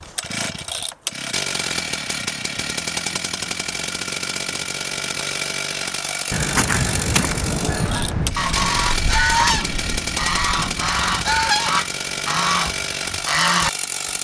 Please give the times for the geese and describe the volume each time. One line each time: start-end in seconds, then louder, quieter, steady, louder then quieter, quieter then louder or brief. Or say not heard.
6.3-13.7 steady.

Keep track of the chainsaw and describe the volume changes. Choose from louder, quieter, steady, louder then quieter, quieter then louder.
steady.